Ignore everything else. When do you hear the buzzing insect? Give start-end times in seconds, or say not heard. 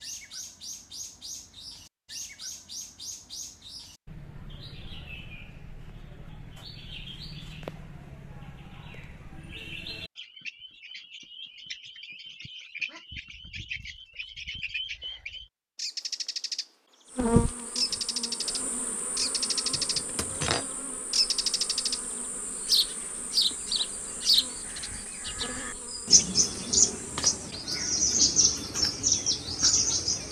17.1-27.6.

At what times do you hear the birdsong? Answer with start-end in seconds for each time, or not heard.
0.0-16.7, 17.8-20.1, 21.1-22.0, 22.6-30.2.